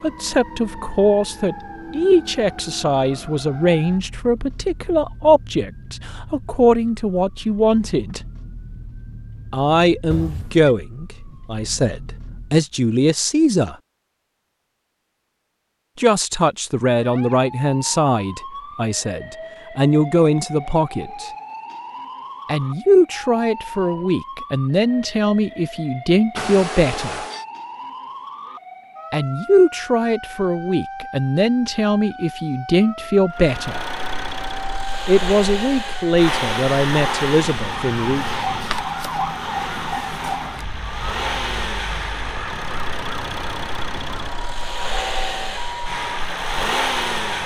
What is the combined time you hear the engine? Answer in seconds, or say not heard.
14 s.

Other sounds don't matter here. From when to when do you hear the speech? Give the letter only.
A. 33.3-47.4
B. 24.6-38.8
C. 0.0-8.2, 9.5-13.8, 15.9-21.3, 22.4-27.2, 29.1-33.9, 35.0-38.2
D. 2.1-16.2
C.